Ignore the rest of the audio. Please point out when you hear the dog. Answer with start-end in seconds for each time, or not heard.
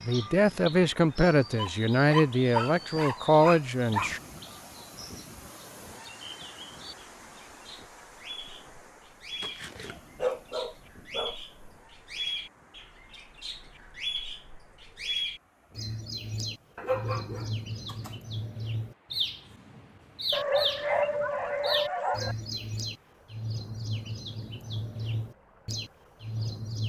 1.6-4.2, 9.4-11.3, 16.8-18.1, 20.3-22.4.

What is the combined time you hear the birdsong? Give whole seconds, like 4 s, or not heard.
27 s.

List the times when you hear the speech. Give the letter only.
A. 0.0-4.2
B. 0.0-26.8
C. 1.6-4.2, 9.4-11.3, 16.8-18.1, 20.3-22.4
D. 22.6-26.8
A.